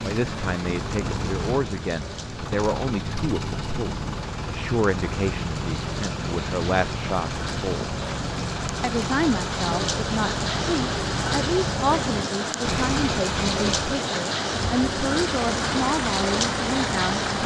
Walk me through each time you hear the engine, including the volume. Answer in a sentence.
The engine can be heard from 0.0 to 17.4 s, at a steady volume.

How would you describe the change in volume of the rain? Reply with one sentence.
The loudness of the rain goes up.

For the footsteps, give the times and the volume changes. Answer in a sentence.
You can't hear the footsteps here.